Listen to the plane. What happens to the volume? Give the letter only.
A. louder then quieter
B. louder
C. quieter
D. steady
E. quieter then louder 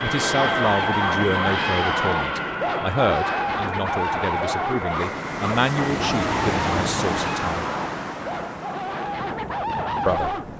C.